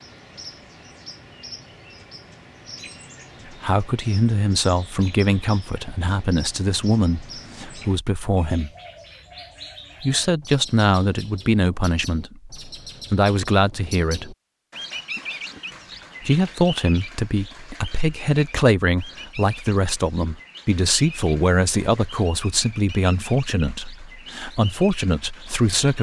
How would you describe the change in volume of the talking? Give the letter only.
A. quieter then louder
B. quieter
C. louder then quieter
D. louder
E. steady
E.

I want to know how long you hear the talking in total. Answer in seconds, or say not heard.
19 s.